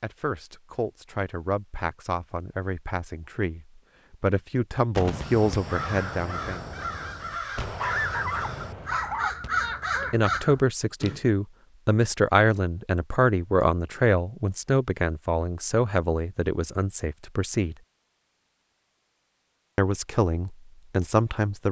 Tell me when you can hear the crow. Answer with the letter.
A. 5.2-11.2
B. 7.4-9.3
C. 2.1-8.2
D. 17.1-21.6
A.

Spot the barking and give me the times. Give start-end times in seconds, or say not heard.
7.4-9.3.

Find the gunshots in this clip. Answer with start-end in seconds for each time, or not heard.
5.0-9.5.